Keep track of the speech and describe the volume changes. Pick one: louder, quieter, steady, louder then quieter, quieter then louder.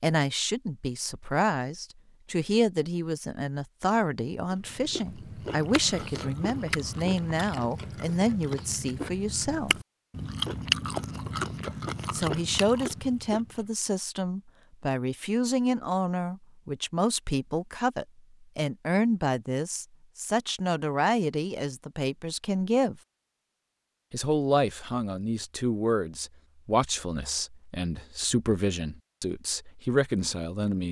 steady.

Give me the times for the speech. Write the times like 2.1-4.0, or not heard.
0.0-9.8, 12.1-23.0, 24.1-30.8.